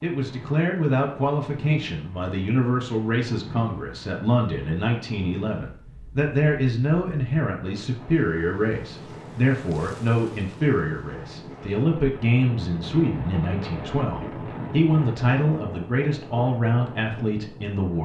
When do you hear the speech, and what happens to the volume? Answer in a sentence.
The speech can be heard from 0.0 to 18.0 s, at a steady volume.